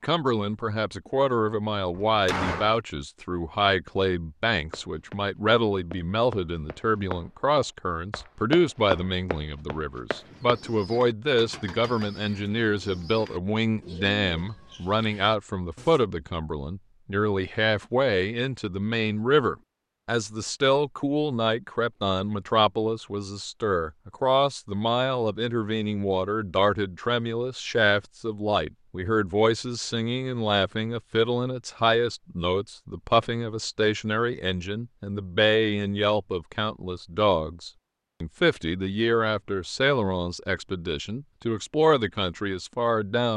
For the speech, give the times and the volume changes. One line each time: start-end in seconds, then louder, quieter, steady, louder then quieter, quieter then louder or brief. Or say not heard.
0.0-43.3 steady.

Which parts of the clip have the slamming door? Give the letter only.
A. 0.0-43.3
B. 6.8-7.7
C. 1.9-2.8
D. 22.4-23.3
C.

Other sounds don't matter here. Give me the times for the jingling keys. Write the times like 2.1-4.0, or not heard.
not heard.